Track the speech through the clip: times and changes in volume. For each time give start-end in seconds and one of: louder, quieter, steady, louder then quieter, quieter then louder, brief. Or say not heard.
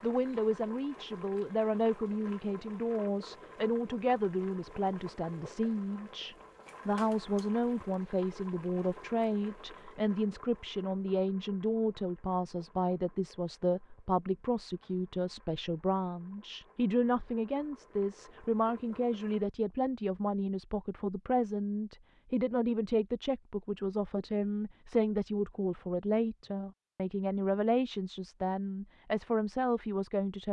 0.0-30.4 steady.